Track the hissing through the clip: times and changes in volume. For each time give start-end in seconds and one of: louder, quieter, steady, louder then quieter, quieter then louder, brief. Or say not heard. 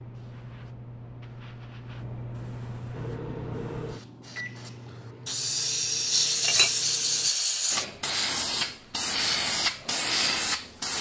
0.0-10.9 louder.